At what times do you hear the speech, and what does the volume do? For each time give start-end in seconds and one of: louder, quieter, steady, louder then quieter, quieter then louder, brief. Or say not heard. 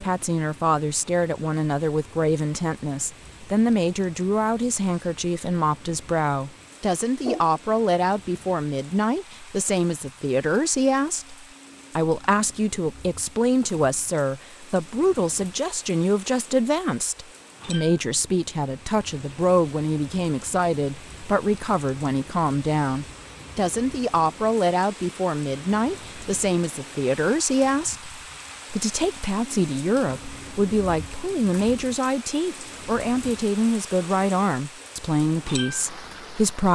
0.0-11.3 steady
11.9-36.7 steady.